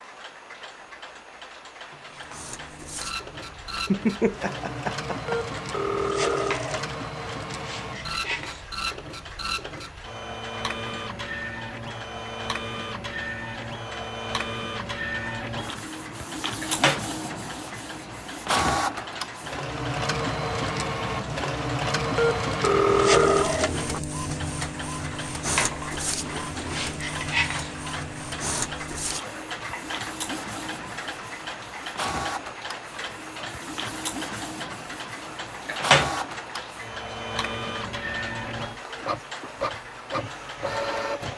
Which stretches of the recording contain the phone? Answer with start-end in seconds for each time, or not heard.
5.2-7.0, 22.1-24.0.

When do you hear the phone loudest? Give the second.
23 s.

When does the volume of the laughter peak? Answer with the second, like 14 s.
4 s.